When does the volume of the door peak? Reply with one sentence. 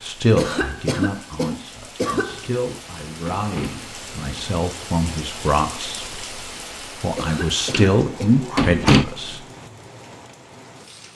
The loudest moment of the door is at 9 seconds.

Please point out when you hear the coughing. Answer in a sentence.
The coughing can be heard from 0.3 to 2.5 s and from 7.2 to 8.4 s.